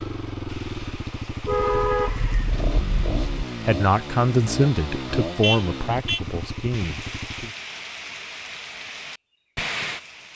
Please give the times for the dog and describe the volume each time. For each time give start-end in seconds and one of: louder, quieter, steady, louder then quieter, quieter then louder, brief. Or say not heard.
not heard.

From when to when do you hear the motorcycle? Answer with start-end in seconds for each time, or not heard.
0.0-7.5.